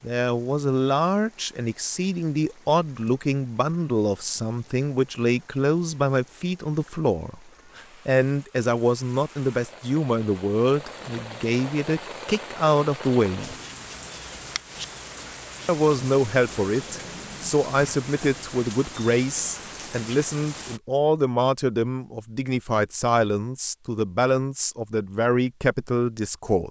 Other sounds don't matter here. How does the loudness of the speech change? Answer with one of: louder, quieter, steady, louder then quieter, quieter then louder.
steady.